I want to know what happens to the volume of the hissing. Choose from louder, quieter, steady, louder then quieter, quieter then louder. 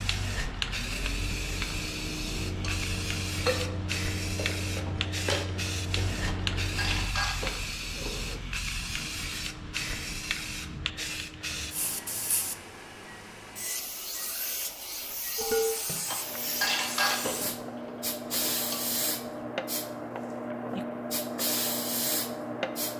steady.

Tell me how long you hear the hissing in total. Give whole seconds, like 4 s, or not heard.
23 s.